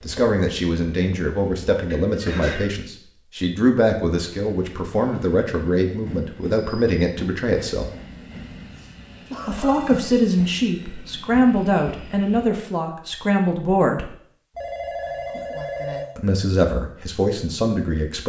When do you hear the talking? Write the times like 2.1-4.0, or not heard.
0.0-7.9, 9.4-14.1, 16.1-18.2.